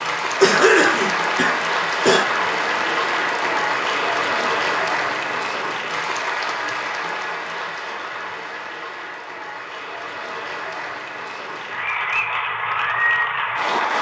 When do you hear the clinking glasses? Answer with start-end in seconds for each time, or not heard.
not heard.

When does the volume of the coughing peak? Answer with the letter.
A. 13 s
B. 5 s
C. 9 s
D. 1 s
D.